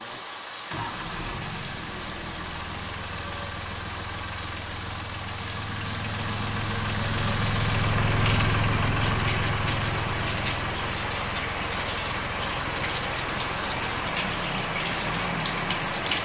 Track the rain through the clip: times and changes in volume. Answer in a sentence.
The rain can be heard from 0.0 to 16.1 s, getting louder.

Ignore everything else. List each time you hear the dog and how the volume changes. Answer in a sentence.
The dog can't be heard in this clip.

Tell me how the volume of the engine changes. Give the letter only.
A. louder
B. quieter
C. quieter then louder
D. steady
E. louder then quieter
E.